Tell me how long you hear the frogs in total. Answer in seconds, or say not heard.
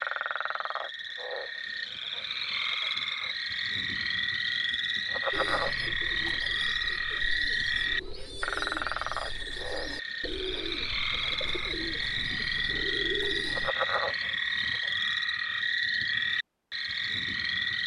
18 s.